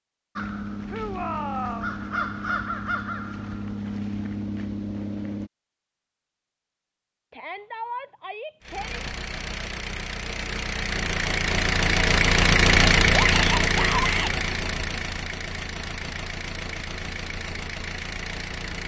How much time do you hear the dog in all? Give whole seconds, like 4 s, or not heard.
not heard.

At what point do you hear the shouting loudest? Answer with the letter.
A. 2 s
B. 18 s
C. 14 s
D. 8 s
C.